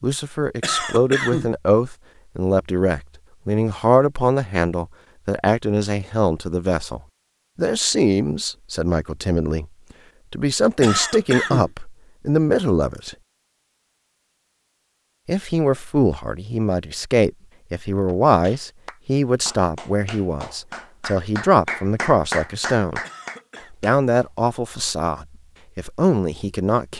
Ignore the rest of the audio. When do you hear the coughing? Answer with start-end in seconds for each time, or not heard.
0.6-1.5, 10.8-11.7, 23.0-23.8.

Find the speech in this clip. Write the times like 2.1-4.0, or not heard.
0.0-9.7, 10.3-13.2, 15.2-23.0, 23.7-26.9.